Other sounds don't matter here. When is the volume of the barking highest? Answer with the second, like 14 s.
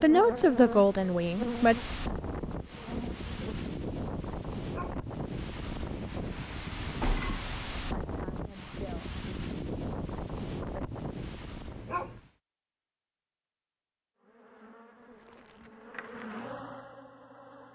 12 s.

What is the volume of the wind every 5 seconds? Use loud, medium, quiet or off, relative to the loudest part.
loud, loud, loud, off.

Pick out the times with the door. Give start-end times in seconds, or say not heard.
7.0-7.5.